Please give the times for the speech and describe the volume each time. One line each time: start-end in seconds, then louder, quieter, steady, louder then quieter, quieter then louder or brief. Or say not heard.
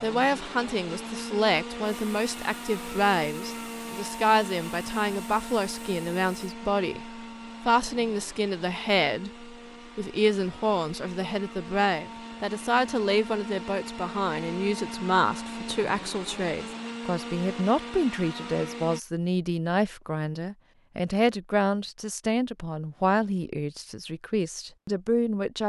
0.0-25.6 steady.